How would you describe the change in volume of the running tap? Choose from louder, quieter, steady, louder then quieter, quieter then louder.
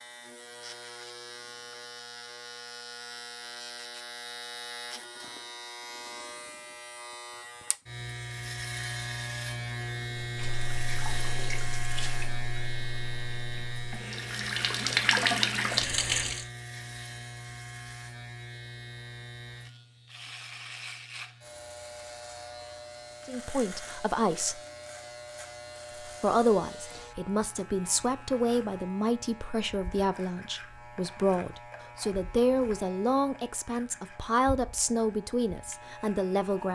quieter then louder.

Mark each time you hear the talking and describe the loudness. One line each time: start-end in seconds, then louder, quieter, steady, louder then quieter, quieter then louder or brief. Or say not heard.
23.2-24.6 brief
26.1-36.7 steady.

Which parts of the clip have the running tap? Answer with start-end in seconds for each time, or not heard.
10.2-16.4.